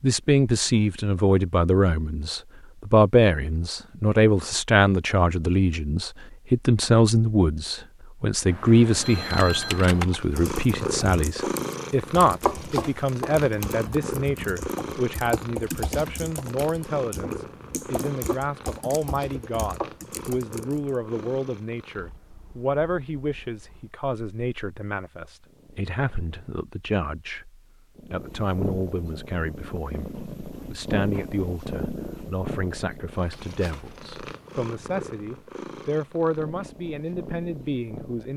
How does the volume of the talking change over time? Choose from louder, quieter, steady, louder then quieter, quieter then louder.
quieter.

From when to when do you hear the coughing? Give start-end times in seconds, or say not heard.
not heard.